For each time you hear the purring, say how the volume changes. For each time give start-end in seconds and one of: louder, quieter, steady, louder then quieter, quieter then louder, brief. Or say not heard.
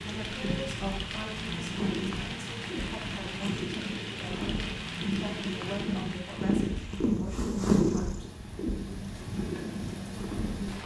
0.0-10.8 louder then quieter.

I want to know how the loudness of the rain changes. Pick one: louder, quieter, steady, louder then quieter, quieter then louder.
quieter then louder.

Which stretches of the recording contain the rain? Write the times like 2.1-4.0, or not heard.
0.0-10.8.